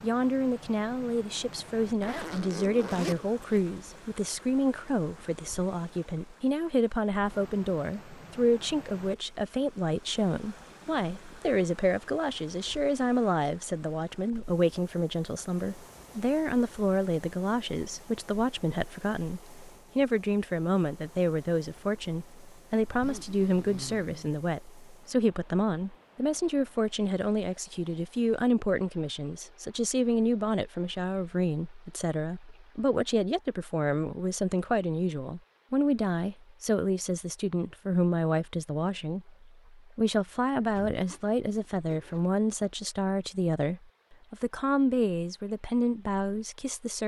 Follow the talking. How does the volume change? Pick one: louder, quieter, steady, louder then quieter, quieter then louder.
steady.